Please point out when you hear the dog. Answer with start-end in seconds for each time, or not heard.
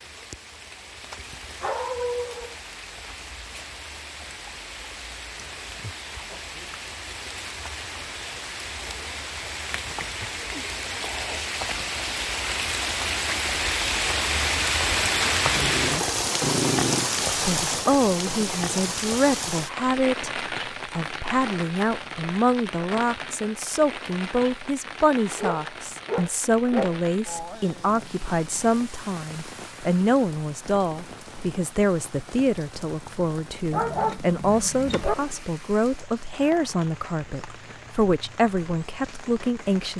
1.1-2.5, 15.5-17.1, 25.4-26.9, 33.7-35.1.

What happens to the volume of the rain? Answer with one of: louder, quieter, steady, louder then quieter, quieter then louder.
louder then quieter.